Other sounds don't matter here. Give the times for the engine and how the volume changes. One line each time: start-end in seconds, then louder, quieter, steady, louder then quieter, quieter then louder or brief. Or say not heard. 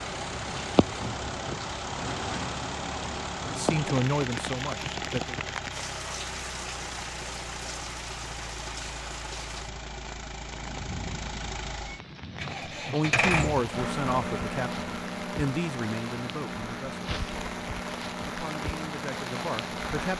0.0-20.1 louder then quieter.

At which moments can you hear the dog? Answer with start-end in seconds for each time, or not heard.
not heard.